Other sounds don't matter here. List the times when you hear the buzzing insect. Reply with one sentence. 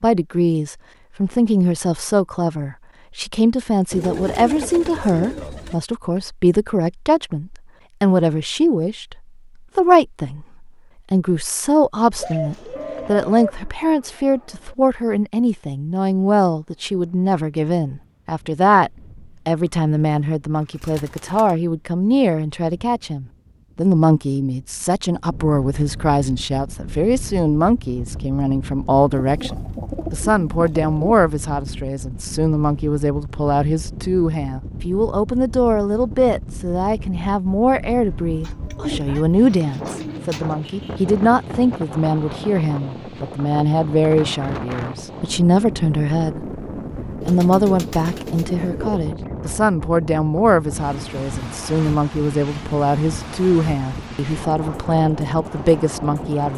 The buzzing insect can't be heard in this clip.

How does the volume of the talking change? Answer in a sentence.
The loudness of the talking stays about the same.